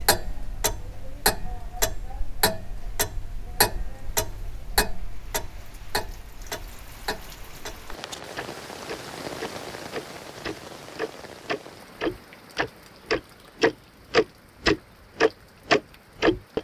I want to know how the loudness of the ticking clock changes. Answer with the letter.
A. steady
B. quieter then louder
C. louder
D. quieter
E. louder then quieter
B.